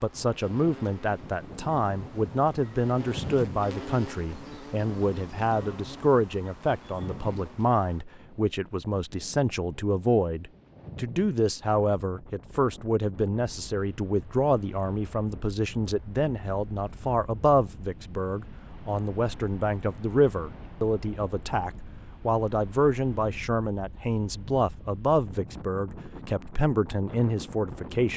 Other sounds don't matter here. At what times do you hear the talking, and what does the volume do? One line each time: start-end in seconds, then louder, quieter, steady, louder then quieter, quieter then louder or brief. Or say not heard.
0.0-28.1 steady.